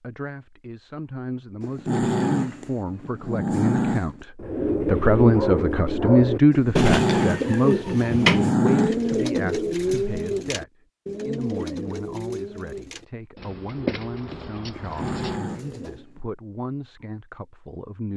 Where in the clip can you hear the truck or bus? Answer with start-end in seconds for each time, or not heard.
not heard.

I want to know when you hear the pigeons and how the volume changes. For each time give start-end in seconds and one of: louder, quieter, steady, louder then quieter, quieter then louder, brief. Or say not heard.
4.3-16.1 quieter.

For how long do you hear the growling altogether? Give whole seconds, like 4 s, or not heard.
7 s.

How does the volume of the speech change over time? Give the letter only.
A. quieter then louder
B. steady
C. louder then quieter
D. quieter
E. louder
C.